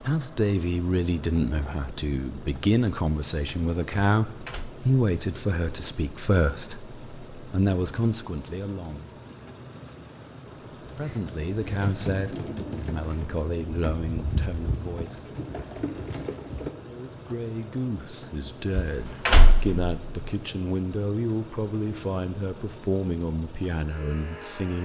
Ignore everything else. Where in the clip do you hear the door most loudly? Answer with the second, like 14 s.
19 s.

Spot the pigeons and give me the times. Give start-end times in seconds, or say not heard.
10.8-16.7.